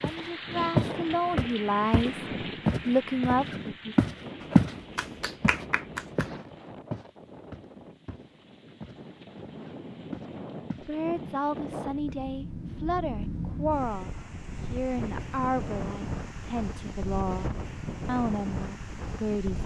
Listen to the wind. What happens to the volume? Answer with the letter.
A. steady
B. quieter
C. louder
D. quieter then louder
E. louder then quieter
D.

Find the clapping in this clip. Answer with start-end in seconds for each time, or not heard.
4.4-6.4.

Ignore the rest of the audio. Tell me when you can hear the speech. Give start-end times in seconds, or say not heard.
0.0-2.1, 2.9-4.0, 10.8-14.1, 14.7-19.6.